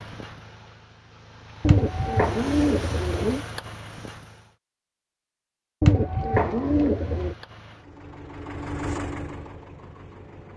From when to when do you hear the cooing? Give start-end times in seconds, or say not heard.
1.6-3.5, 5.8-7.3.